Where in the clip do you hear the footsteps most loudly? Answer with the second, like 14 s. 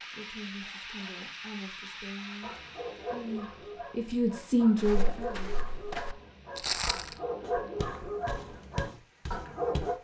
7 s.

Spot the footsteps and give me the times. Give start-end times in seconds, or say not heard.
4.8-9.9.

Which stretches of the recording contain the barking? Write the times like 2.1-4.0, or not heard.
2.4-9.9.